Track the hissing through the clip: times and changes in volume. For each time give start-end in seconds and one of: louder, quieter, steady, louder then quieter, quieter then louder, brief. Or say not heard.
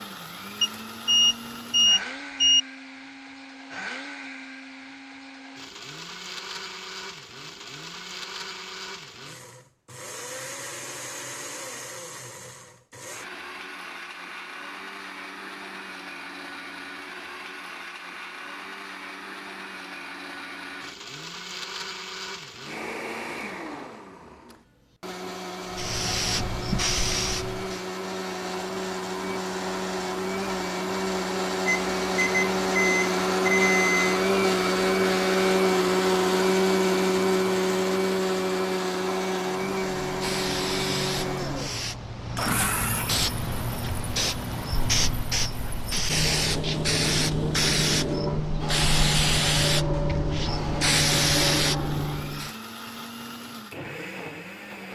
25.7-27.8 brief
39.5-52.5 louder.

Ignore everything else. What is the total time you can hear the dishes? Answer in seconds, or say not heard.
not heard.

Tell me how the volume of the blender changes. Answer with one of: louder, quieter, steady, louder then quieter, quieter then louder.
louder then quieter.